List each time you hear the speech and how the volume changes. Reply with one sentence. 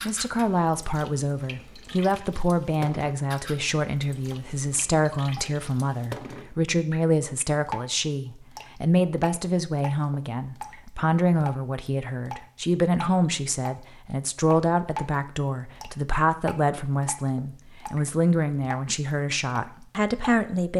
You can hear the speech from 0.0 to 20.7 s, at a steady volume.